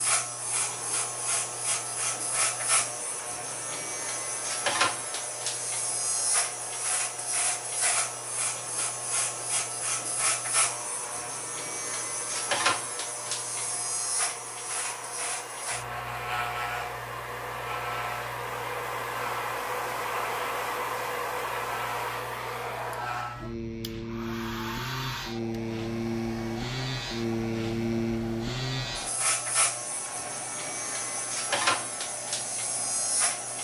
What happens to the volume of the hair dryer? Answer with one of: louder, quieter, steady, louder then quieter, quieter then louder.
louder then quieter.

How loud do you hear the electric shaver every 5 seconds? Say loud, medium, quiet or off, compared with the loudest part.
loud, loud, loud, medium, medium, loud, loud.